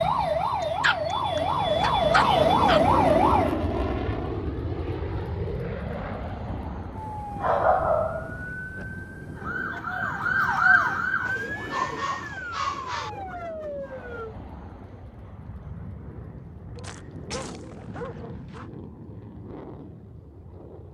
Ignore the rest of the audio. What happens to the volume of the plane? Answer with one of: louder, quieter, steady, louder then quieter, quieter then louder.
quieter.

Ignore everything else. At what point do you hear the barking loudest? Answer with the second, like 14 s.
8 s.